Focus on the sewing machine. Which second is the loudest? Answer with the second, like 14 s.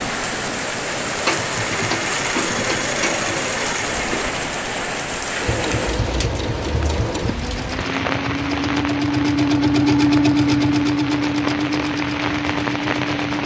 10 s.